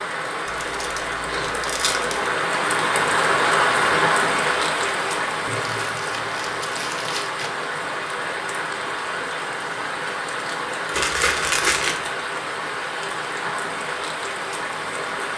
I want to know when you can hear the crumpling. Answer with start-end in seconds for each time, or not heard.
0.5-2.2, 5.5-7.5, 10.9-12.1.